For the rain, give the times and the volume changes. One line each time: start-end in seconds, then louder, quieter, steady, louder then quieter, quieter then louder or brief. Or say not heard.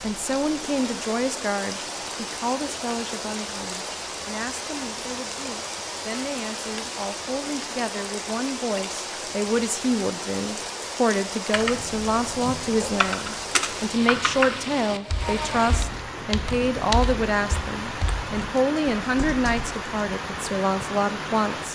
0.0-21.7 steady.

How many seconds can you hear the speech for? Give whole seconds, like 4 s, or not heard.
22 s.